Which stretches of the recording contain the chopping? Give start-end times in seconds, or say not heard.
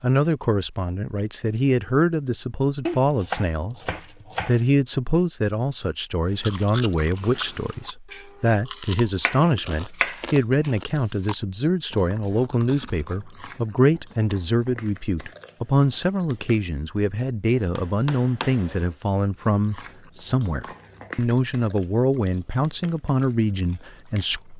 2.9-4.6, 9.2-10.2, 17.6-18.9.